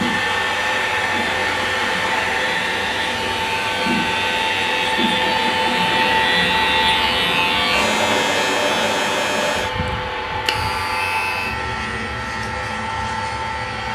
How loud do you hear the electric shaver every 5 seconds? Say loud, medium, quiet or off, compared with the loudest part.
medium, loud, medium.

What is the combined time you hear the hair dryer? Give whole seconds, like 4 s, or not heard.
14 s.